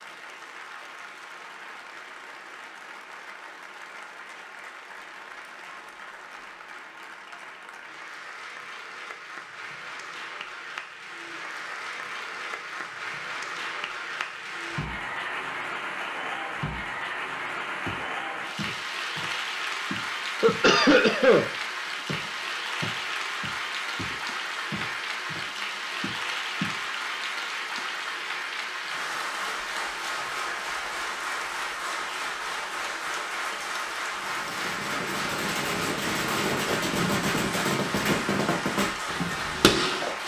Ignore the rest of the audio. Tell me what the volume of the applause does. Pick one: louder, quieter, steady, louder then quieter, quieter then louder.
louder.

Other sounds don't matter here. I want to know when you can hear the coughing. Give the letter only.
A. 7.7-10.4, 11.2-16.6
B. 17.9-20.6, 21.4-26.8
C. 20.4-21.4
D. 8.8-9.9
C.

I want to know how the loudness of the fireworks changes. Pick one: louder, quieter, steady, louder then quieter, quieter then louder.
louder.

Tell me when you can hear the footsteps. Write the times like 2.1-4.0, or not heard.
17.9-20.6, 21.4-26.8.